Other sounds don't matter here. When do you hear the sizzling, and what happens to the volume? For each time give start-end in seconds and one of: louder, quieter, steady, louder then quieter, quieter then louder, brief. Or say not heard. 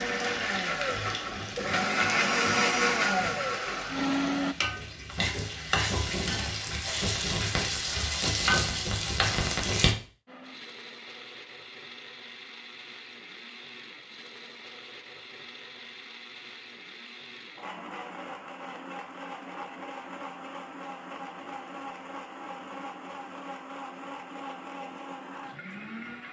0.0-9.9 louder.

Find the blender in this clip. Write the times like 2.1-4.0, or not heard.
0.0-4.5, 10.2-26.2.